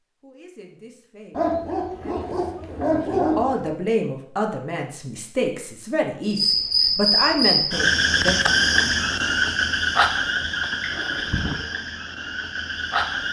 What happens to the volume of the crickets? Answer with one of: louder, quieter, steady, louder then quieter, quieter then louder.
quieter.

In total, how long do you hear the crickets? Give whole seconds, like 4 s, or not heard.
7 s.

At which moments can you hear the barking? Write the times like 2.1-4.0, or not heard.
1.3-3.7.